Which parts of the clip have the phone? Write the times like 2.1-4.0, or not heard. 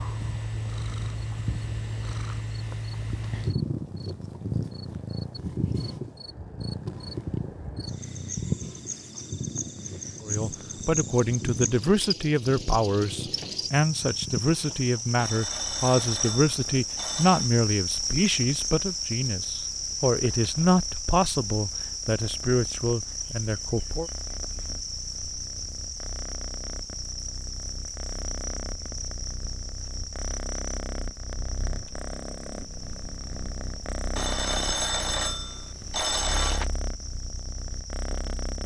15.2-17.5, 34.1-36.6.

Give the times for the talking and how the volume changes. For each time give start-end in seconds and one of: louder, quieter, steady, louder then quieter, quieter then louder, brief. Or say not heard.
10.2-24.1 steady.